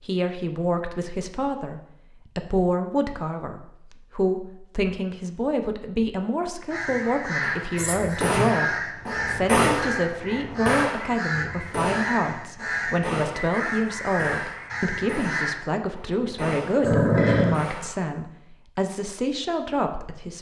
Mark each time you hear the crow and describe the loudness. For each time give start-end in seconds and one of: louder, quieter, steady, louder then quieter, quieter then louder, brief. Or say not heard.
6.7-15.6 steady.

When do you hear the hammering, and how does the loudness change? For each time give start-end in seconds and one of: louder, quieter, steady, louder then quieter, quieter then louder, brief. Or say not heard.
7.4-18.0 quieter.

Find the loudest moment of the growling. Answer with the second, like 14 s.
17 s.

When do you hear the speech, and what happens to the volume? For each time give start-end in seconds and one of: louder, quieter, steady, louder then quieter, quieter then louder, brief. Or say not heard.
0.0-20.3 steady.